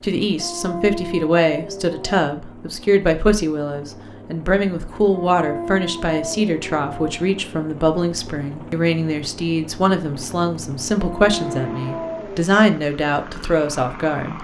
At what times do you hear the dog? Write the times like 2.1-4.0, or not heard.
0.4-2.2, 5.1-7.1, 11.0-12.5.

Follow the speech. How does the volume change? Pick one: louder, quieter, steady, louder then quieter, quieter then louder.
steady.